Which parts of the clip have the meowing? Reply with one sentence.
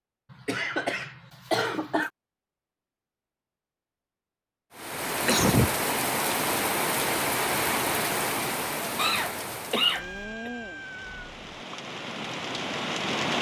The meowing can be heard from 9.9 to 11.4 s.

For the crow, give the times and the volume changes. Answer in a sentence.
You can't hear the crow here.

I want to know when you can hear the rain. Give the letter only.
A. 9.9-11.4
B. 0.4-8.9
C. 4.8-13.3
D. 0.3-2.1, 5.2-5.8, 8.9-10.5
C.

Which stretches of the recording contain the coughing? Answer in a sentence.
You can hear the coughing from 0.3 to 2.1 s, from 5.2 to 5.8 s and from 8.9 to 10.5 s.